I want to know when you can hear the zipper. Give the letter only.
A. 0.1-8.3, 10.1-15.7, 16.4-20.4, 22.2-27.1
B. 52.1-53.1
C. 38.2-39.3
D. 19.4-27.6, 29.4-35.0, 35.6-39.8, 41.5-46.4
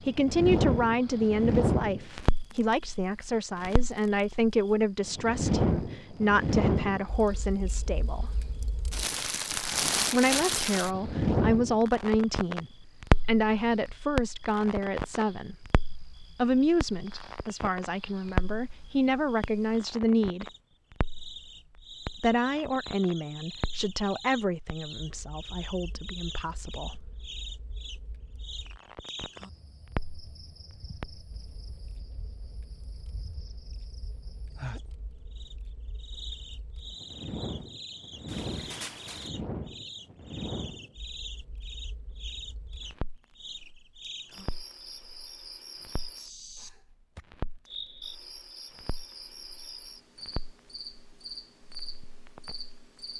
C.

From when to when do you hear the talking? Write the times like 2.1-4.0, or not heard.
0.1-8.3, 10.1-15.7, 16.4-20.4, 22.2-27.1.